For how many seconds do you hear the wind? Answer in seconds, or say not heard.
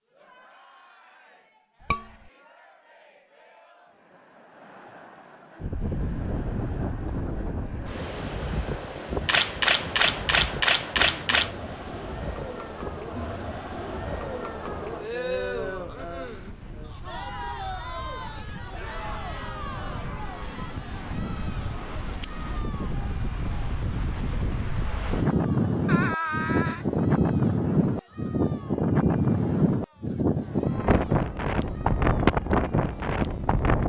28 s.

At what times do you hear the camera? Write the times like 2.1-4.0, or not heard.
9.2-11.6.